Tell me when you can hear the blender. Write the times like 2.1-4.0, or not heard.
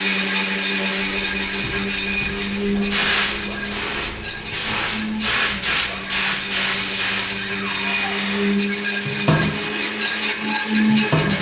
0.0-11.3.